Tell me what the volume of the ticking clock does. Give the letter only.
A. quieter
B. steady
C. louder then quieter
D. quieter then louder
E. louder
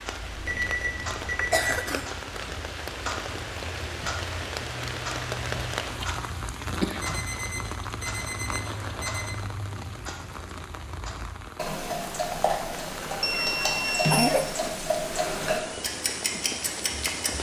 E.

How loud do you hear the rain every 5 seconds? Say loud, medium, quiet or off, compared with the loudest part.
loud, loud, medium, loud.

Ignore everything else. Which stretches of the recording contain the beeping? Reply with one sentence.
You can hear the beeping from 0.3 to 1.6 s, from 7.0 to 9.3 s and from 13.2 to 14.7 s.